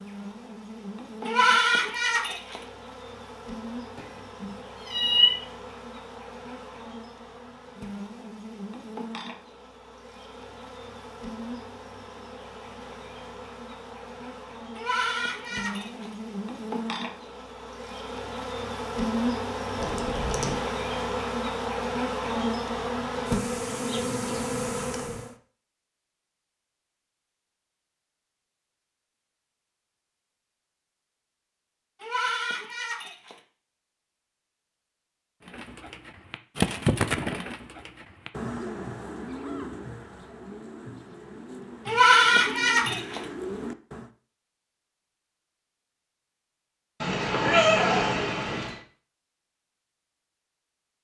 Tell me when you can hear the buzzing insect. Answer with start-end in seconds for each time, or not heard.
0.0-25.4.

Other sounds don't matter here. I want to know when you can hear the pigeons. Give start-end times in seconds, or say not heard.
35.5-44.1.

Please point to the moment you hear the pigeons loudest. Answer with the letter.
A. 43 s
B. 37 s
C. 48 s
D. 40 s
B.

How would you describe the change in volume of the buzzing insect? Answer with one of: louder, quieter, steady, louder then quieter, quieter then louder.
louder.